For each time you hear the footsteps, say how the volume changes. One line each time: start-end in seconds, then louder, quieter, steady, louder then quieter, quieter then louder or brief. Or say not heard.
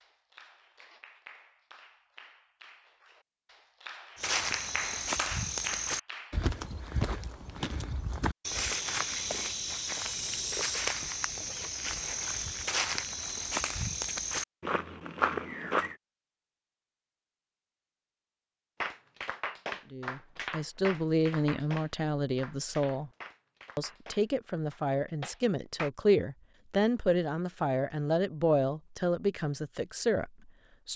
4.2-15.9 steady.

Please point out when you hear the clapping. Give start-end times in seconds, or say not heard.
0.0-6.4, 18.8-25.9.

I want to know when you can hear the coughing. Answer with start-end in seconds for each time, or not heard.
not heard.